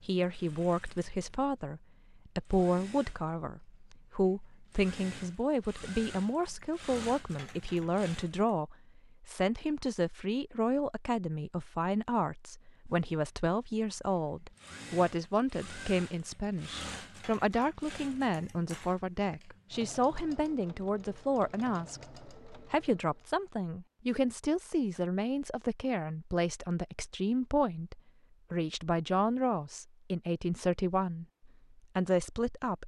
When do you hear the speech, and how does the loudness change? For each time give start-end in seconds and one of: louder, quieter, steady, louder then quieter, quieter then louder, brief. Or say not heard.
0.0-32.8 steady.